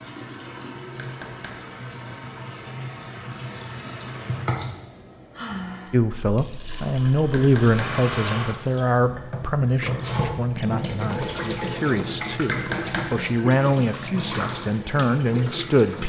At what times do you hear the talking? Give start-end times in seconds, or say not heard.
5.9-16.0.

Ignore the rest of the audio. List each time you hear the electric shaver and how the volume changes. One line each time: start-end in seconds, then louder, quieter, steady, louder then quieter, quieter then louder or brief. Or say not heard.
not heard.